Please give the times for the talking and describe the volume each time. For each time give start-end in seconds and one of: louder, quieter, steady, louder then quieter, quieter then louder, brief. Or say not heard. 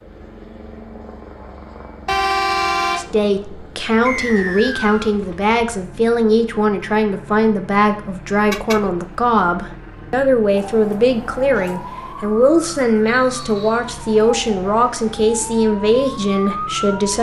3.0-17.1 steady.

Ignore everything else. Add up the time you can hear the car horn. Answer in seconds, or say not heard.
2 s.